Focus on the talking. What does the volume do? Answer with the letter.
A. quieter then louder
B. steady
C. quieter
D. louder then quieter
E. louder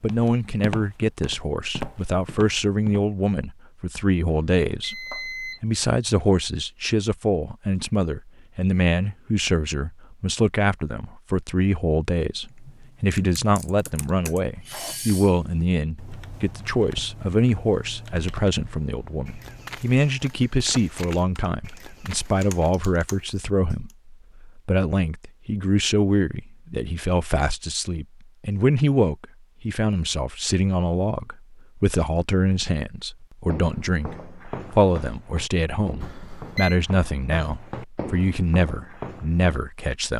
B.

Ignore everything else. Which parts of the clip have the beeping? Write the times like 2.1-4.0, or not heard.
4.2-5.6, 36.0-36.8.